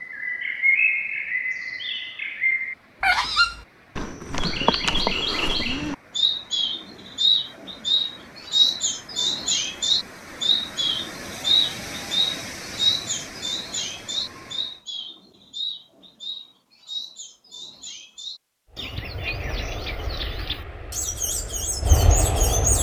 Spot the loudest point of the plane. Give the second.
22 s.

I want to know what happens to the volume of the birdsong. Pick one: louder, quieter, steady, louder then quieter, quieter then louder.
quieter.